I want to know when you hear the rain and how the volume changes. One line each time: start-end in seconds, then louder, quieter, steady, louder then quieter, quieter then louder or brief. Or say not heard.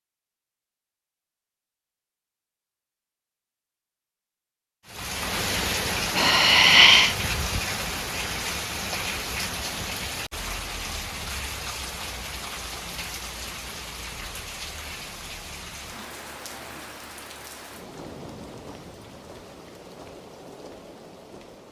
4.8-21.6 quieter.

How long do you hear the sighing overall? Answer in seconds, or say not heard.
2 s.